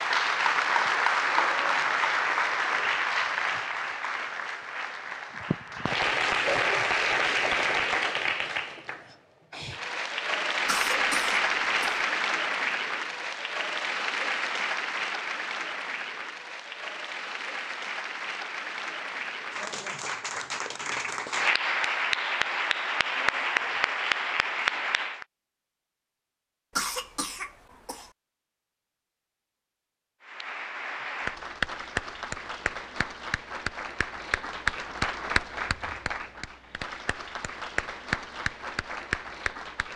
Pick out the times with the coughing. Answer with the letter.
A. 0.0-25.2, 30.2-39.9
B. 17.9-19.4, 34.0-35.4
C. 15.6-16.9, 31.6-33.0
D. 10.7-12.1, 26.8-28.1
D.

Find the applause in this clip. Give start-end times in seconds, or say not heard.
0.0-25.2, 30.2-39.9.